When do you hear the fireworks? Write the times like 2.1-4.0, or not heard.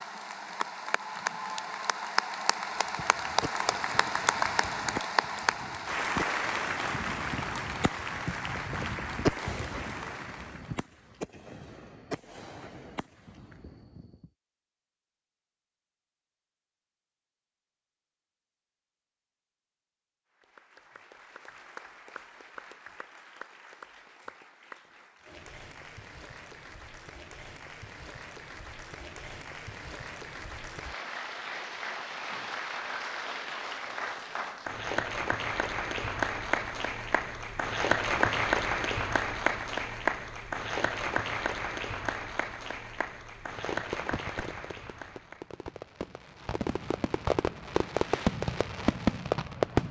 2.8-14.3, 43.5-49.8.